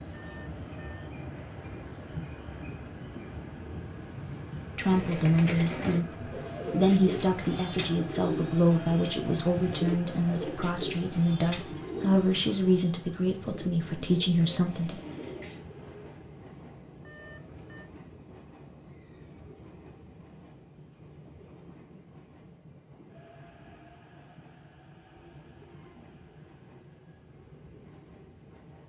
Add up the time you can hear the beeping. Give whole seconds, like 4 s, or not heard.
2 s.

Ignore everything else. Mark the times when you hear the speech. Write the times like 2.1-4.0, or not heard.
4.8-15.0.